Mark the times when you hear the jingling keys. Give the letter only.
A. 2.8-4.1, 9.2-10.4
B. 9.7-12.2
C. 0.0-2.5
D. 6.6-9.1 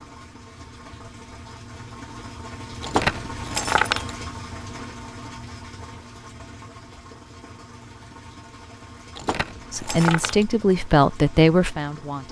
A.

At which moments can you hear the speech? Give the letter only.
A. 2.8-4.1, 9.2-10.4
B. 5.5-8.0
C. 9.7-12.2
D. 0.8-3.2
C.